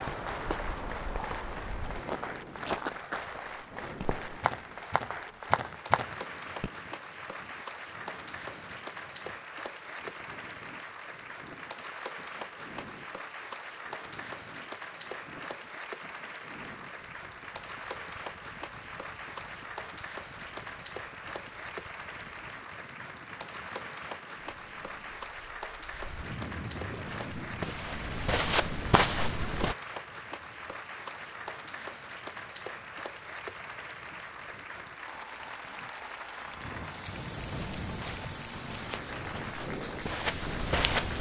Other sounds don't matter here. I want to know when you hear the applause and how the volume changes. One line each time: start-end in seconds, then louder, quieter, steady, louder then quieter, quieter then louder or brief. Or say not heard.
0.0-41.1 steady.